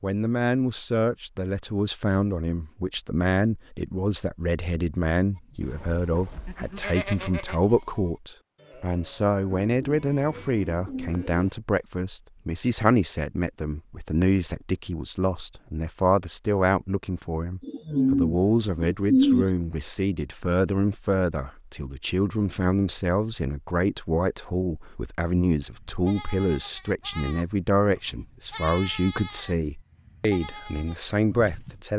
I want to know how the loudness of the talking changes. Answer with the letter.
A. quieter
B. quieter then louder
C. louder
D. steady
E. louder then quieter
D.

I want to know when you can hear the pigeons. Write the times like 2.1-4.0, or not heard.
9.6-11.4, 17.6-19.4.